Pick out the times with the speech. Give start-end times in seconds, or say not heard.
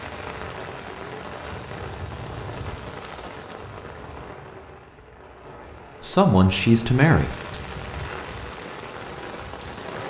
6.0-7.6.